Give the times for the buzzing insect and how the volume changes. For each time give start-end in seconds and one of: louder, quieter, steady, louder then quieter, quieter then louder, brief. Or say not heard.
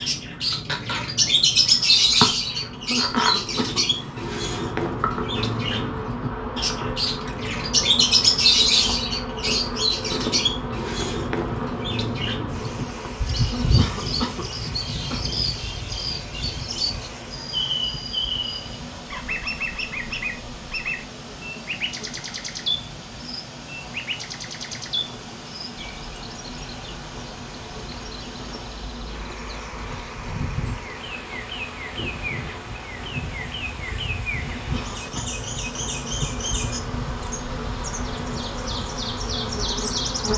0.0-40.3 quieter then louder.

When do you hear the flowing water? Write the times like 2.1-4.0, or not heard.
12.4-40.3.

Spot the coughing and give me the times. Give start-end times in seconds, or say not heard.
2.9-4.2, 13.5-15.2, 34.5-35.3.